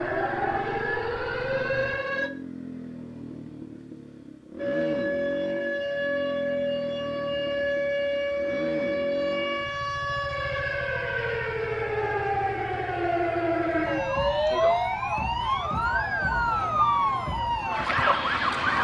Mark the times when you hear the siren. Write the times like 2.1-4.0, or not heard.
0.0-2.3, 4.5-18.7.